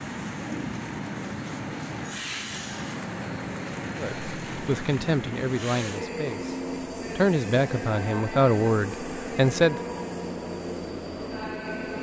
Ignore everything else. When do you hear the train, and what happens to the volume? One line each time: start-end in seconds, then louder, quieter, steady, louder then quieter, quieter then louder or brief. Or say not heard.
0.0-11.9 steady.